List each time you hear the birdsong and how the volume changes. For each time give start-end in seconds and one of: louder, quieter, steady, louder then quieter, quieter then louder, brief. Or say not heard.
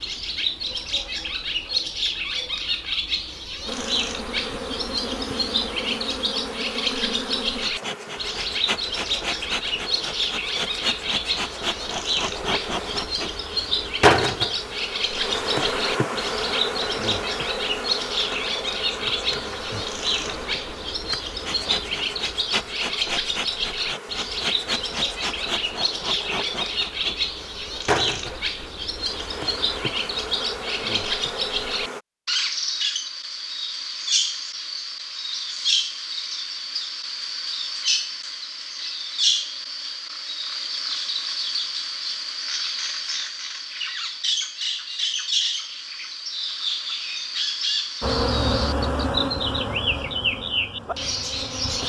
0.0-51.8 steady.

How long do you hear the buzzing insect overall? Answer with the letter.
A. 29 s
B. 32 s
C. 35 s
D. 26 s
B.